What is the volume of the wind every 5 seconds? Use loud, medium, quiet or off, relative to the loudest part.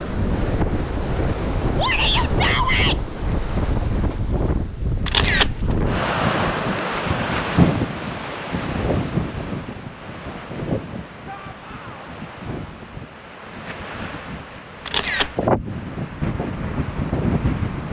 loud, loud, medium, loud.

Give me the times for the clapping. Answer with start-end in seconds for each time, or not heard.
not heard.